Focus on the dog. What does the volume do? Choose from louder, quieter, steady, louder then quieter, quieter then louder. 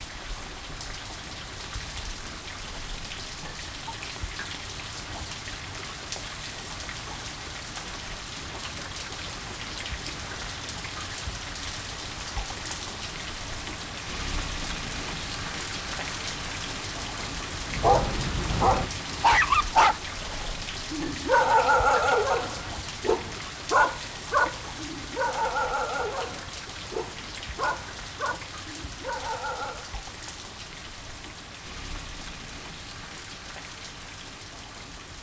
quieter.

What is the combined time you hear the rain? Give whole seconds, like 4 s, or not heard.
35 s.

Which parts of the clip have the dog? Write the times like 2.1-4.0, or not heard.
17.6-29.9.